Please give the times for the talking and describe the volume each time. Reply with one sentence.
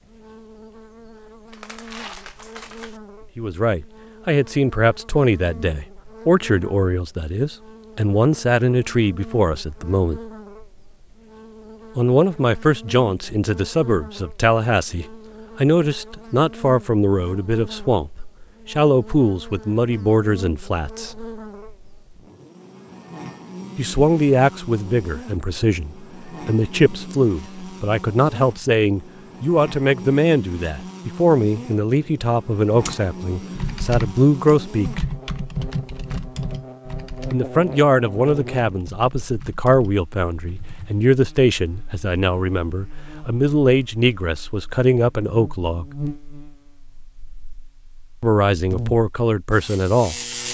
The talking can be heard from 3.4 to 10.2 s, at a steady volume; from 11.9 to 21.2 s, at a steady volume; from 23.8 to 35.0 s, at a steady volume; from 37.3 to 45.9 s, at a steady volume; and briefly from 48.2 to 50.1 s.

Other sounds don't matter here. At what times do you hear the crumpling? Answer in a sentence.
You can hear the crumpling from 1.5 to 3.0 s.